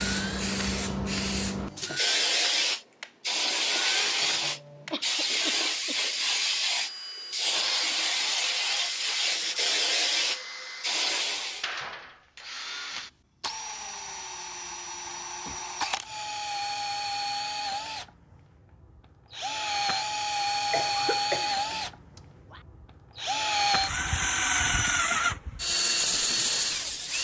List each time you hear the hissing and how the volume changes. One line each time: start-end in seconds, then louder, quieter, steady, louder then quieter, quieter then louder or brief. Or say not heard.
0.0-11.7 steady.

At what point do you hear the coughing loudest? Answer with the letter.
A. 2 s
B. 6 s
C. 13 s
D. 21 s
D.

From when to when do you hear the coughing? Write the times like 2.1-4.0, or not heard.
4.9-6.0, 20.7-22.6.